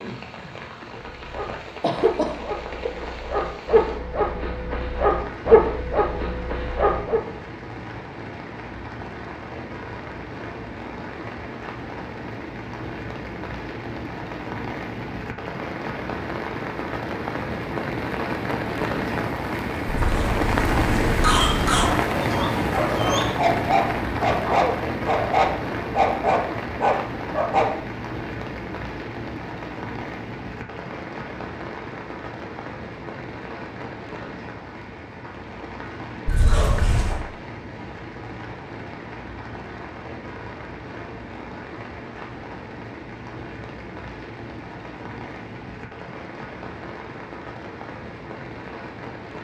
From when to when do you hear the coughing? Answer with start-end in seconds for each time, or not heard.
1.8-2.9, 19.9-21.9, 36.2-37.2.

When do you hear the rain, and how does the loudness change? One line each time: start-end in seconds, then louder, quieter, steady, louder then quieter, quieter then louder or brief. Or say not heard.
0.0-49.3 louder then quieter.